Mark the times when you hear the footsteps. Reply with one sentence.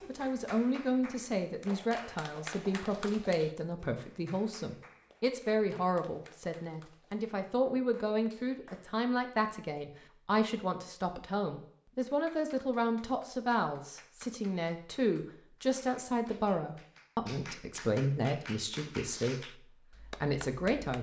You can't hear the footsteps here.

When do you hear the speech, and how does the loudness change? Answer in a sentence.
The speech can be heard from 0.1 to 20.9 s, at a steady volume.